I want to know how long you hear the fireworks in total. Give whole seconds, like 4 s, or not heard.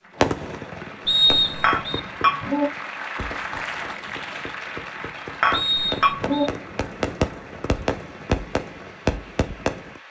10 s.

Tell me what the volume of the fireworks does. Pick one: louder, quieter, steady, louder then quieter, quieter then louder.
quieter then louder.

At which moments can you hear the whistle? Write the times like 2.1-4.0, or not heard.
1.1-2.0, 5.5-6.5.